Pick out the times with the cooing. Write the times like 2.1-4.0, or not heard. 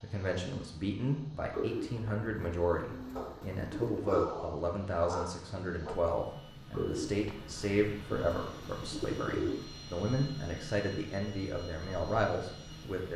1.5-4.3, 6.7-9.7.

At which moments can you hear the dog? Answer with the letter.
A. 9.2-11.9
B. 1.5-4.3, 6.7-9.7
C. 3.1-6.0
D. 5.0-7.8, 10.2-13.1
C.